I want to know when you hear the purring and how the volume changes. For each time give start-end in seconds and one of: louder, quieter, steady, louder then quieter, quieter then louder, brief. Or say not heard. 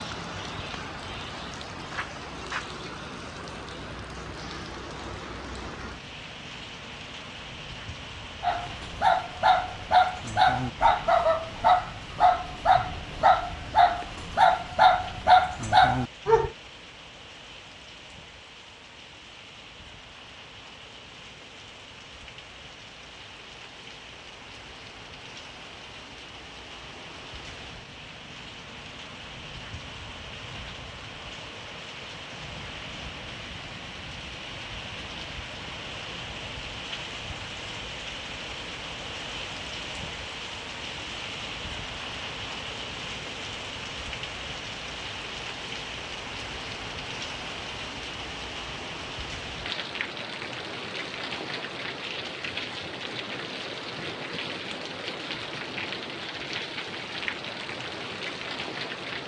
not heard.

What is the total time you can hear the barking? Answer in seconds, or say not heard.
8 s.